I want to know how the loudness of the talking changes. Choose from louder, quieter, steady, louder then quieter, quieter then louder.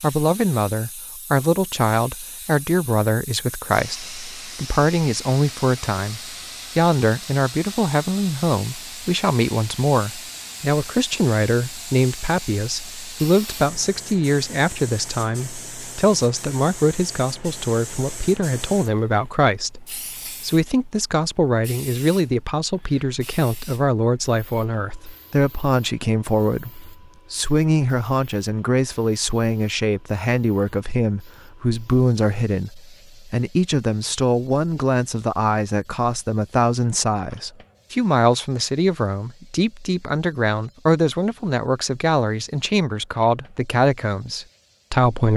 steady.